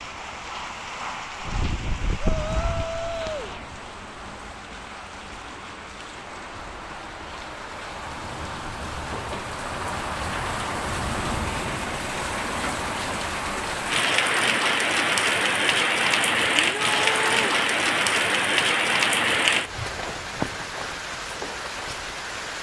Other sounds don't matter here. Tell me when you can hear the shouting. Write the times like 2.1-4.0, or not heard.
2.2-3.5, 16.6-17.6.